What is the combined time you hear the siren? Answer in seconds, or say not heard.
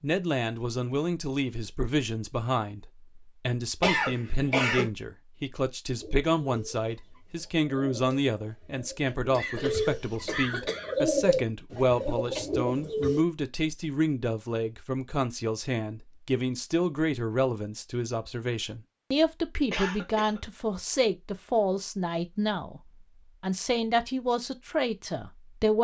not heard.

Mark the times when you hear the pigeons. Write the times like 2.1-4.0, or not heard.
6.0-13.2.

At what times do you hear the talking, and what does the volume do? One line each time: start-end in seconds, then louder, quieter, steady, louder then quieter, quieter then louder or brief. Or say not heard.
0.0-25.7 steady.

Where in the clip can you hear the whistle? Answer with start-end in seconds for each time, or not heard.
not heard.